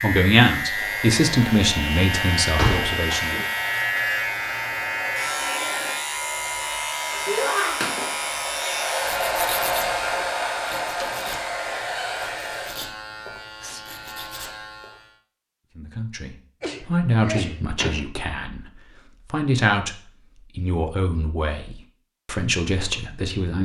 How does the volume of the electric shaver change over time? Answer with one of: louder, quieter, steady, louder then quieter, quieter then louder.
quieter.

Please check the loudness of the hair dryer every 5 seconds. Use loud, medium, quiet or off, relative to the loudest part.
medium, loud, loud, off, off.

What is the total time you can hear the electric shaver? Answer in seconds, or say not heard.
15 s.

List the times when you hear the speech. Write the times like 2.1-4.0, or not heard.
0.0-3.5, 15.8-23.6.